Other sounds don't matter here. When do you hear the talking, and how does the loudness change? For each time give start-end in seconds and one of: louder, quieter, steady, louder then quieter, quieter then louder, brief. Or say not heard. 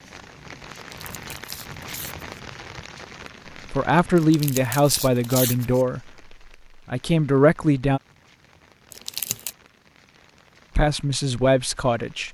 3.7-8.0 quieter then louder
10.8-12.2 brief.